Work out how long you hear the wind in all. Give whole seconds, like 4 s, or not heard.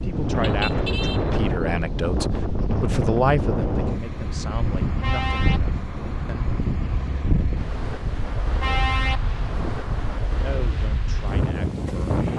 12 s.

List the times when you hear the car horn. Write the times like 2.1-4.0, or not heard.
0.3-1.2, 4.8-6.6, 8.2-10.2.